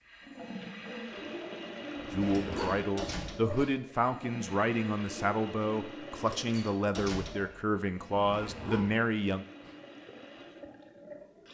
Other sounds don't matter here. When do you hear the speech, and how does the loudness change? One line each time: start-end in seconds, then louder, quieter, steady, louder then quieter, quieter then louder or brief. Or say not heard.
2.1-9.4 steady.